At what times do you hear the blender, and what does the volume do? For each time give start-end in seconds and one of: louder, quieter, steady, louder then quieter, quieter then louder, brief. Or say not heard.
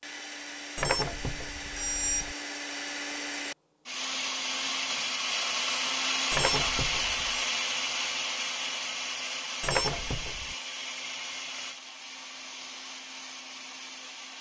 0.0-14.3 louder then quieter.